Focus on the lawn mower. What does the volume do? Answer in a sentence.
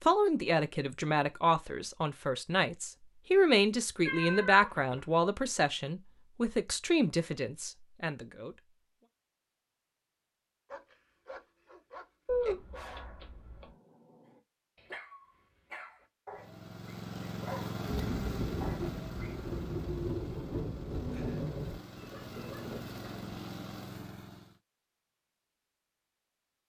The volume of the lawn mower goes down, then up.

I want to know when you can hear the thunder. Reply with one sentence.
You can hear the thunder from 17.9 to 21.8 s.